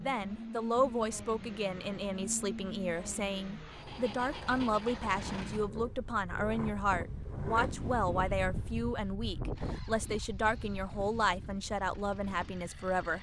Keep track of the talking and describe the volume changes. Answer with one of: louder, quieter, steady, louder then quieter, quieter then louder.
steady.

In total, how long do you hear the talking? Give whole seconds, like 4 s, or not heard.
13 s.